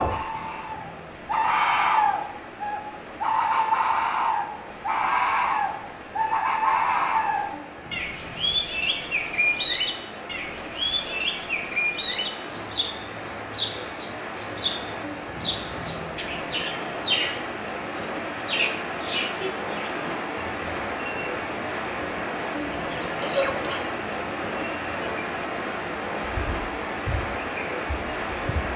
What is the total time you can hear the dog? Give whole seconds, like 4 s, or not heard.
not heard.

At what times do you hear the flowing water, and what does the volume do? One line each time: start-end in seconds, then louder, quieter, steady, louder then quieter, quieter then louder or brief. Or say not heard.
0.1-28.7 louder.